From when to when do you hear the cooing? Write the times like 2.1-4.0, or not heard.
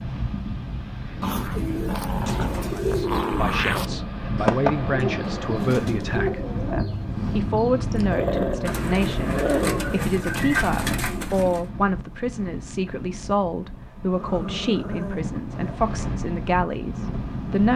1.1-11.7.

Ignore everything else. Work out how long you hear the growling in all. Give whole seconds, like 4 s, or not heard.
6 s.